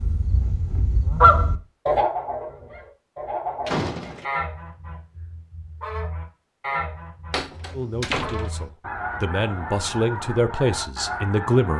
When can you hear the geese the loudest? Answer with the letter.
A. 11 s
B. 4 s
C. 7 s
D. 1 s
D.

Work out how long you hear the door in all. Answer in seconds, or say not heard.
2 s.